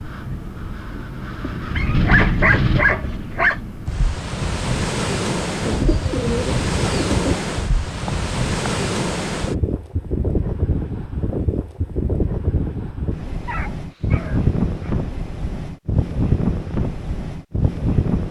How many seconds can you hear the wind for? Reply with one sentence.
The wind can be heard for 18 seconds in total.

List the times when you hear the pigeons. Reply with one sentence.
The pigeons can be heard from 5.6 to 7.3 s.